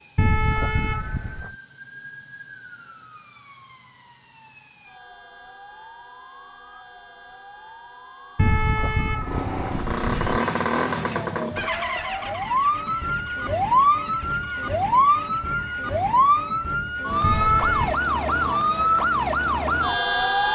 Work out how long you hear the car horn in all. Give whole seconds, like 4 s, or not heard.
4 s.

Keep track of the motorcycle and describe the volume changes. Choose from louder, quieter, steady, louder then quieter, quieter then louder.
quieter.